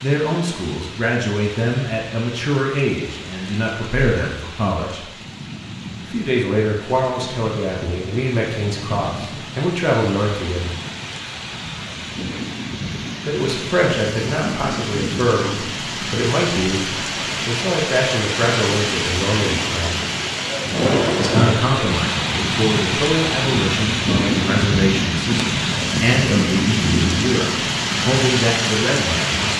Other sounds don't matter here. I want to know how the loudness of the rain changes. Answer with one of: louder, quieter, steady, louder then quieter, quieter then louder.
louder.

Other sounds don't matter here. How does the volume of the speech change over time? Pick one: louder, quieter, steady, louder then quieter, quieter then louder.
steady.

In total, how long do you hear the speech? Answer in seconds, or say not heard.
25 s.